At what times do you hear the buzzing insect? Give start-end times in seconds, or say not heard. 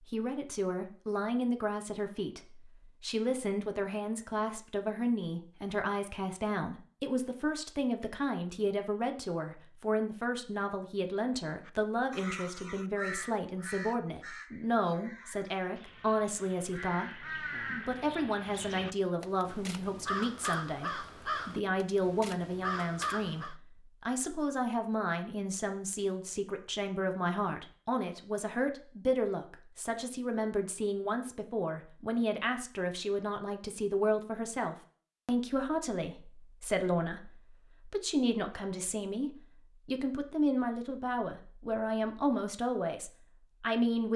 not heard.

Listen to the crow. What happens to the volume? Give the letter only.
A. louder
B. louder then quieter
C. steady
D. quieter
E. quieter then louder
E.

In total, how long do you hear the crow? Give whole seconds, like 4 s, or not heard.
12 s.